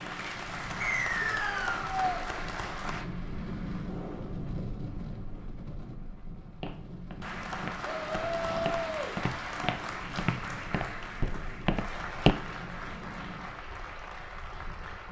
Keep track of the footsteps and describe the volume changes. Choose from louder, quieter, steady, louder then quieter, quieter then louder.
louder.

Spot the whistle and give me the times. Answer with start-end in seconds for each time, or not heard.
0.8-1.9.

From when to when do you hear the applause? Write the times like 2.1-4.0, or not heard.
0.0-3.9, 7.2-15.0.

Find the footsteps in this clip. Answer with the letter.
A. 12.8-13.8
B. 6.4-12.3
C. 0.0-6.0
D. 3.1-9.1
B.